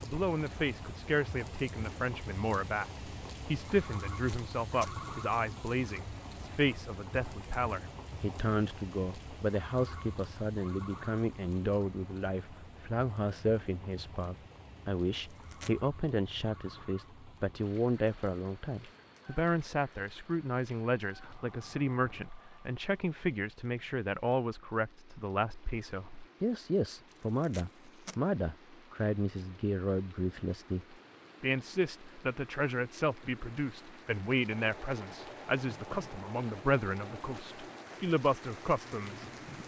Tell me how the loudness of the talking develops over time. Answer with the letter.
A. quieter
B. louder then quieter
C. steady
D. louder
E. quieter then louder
C.